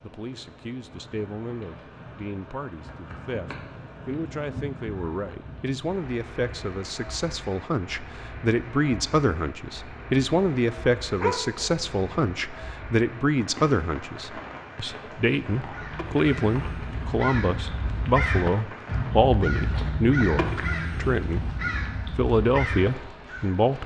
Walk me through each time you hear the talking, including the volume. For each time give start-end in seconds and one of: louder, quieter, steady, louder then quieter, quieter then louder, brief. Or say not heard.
0.0-21.4 louder
22.1-23.8 brief.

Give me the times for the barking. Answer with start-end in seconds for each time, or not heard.
11.2-11.8.